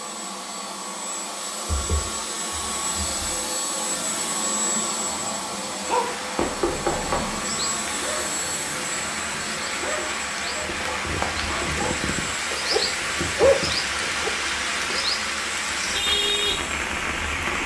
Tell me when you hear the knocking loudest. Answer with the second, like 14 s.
7 s.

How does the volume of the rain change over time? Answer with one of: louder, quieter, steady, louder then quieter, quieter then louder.
louder.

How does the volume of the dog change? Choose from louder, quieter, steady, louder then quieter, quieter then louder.
quieter then louder.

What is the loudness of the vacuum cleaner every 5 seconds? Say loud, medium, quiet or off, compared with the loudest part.
loud, loud, medium, medium.